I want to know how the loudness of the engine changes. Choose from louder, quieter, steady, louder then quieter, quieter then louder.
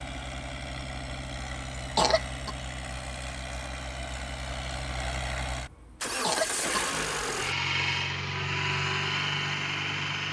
louder.